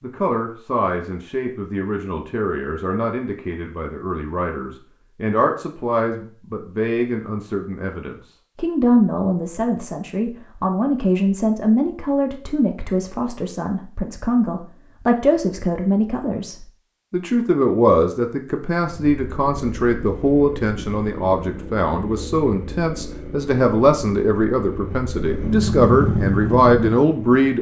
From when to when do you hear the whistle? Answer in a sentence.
You can't hear the whistle here.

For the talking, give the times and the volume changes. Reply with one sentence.
You can hear the talking from 0.0 to 27.5 s, getting louder.